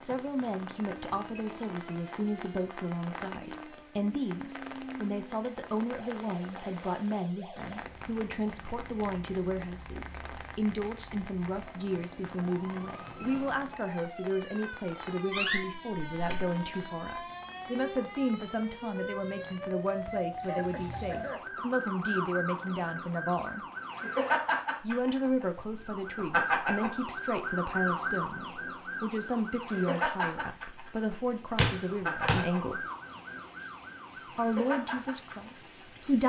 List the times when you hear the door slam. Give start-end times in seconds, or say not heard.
15.3-16.4, 31.6-32.5.